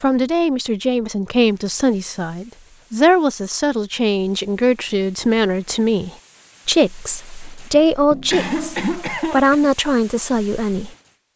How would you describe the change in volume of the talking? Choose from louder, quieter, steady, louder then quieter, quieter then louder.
steady.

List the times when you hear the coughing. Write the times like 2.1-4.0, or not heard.
7.7-9.7.